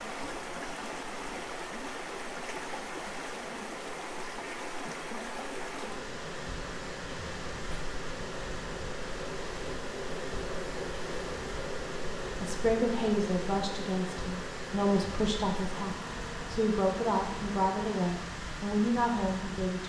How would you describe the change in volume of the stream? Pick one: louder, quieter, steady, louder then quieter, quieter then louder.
steady.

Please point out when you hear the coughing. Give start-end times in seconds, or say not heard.
not heard.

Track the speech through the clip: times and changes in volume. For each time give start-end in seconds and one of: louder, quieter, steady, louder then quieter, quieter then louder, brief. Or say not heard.
12.4-19.8 steady.